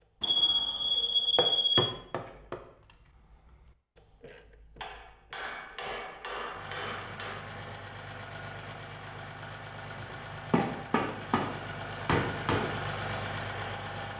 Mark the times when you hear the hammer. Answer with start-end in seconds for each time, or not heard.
0.3-2.5, 4.8-7.5, 10.0-12.7.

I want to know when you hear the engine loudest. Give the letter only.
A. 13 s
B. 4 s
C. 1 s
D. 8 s
A.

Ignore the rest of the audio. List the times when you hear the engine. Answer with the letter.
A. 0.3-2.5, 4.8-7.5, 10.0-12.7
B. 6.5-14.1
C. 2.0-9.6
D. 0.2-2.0
B.